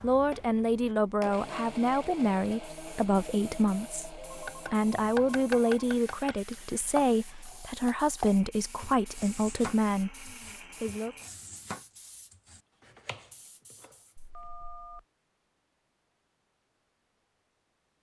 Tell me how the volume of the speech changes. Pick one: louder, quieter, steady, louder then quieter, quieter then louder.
steady.